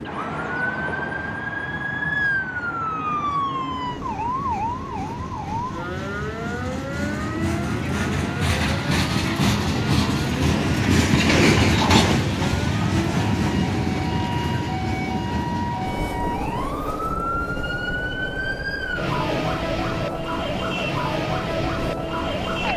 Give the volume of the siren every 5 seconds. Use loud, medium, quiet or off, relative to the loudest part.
loud, medium, medium, loud, loud.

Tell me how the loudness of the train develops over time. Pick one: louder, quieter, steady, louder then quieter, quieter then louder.
louder then quieter.